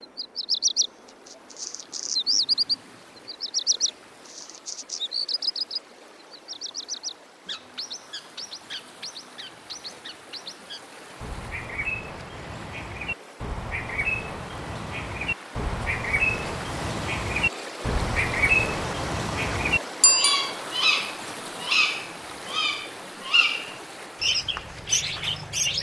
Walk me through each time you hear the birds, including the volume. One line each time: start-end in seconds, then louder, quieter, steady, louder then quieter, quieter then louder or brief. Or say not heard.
0.0-25.7 quieter then louder.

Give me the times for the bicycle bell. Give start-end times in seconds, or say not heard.
20.0-20.6.